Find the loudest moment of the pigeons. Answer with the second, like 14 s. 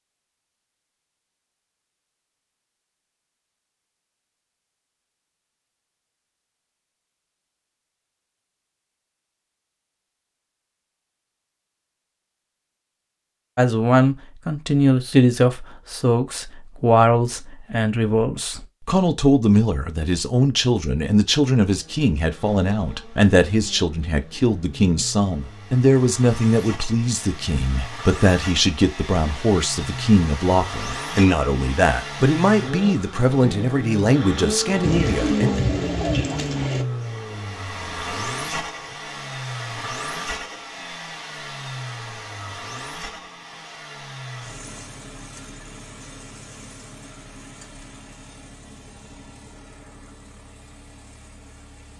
36 s.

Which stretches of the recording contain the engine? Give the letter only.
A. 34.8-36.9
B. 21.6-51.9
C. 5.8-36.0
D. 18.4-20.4
B.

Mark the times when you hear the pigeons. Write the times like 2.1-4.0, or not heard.
34.8-36.9.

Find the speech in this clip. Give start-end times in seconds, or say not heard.
13.6-35.5.